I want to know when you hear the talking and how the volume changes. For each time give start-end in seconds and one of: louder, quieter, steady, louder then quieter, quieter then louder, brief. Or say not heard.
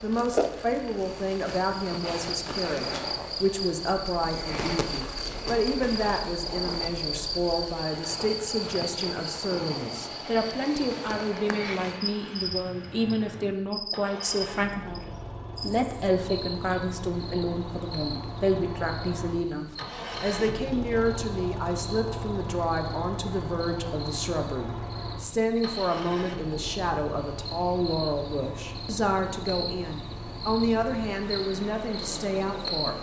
0.0-32.9 steady.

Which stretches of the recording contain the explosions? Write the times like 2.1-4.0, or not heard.
not heard.